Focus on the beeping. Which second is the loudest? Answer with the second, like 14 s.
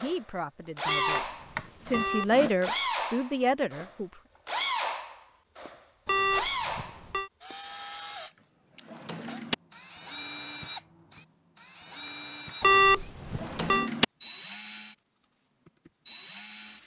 13 s.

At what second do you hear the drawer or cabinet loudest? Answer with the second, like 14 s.
14 s.